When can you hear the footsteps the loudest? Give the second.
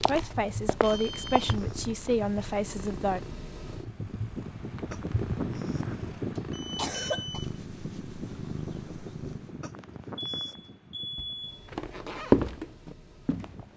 12 s.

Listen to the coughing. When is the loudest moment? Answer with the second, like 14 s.
7 s.